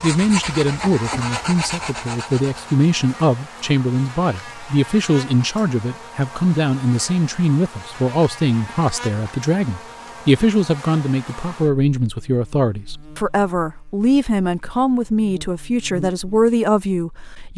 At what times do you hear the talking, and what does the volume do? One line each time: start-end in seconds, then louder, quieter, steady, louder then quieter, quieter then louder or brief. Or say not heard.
0.0-17.5 steady.